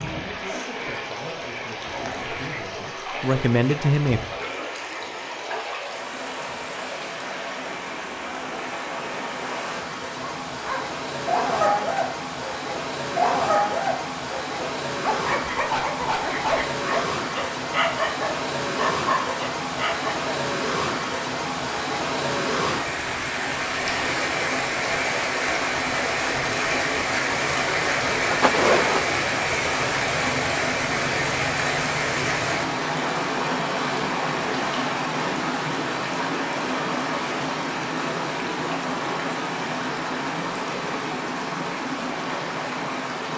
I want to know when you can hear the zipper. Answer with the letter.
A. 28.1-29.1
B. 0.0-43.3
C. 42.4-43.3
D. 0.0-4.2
A.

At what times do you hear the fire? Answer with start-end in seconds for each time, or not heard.
not heard.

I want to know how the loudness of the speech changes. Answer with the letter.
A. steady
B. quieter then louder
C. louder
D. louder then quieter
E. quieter
C.